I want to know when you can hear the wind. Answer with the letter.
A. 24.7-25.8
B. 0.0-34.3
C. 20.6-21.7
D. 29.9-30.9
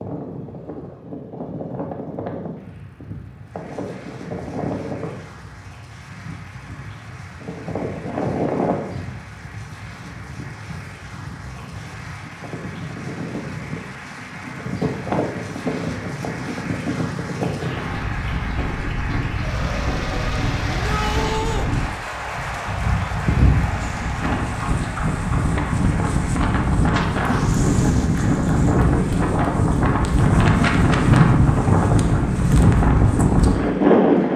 B.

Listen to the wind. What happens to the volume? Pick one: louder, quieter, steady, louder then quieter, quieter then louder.
louder.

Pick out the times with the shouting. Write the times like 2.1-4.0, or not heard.
20.6-21.7.